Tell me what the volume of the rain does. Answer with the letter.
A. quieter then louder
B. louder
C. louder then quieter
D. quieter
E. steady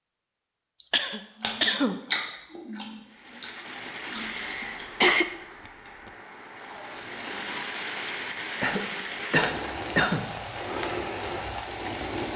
A.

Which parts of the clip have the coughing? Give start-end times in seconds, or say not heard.
0.9-2.0, 4.2-6.1, 8.6-10.3.